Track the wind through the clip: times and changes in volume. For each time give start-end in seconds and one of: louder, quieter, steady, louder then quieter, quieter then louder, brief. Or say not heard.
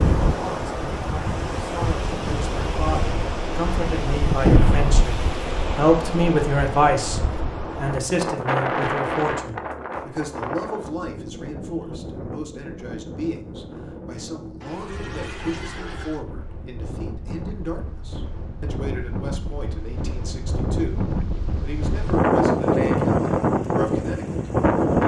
0.0-25.0 quieter then louder.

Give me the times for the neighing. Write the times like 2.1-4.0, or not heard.
14.6-16.2.